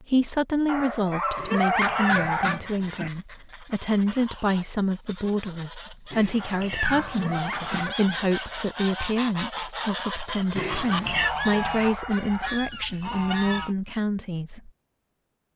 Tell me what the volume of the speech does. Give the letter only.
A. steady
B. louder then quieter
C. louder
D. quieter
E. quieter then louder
A.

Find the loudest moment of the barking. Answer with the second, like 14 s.
2 s.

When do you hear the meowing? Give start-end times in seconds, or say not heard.
1.4-3.1, 6.1-7.8, 10.6-11.3.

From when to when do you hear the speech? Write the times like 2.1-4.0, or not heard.
0.0-14.7.